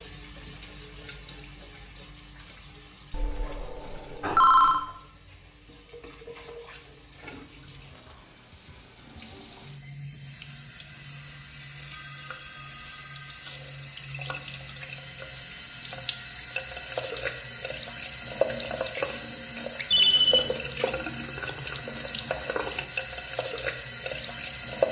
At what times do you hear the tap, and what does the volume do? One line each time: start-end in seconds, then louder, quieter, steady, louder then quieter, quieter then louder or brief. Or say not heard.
0.0-24.8 louder.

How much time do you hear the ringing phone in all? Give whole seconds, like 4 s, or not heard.
4 s.